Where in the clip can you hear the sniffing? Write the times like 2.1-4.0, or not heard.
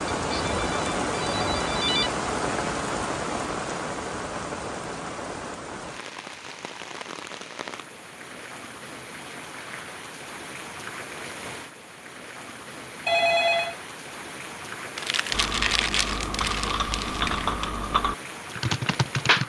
not heard.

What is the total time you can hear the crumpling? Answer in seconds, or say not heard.
3 s.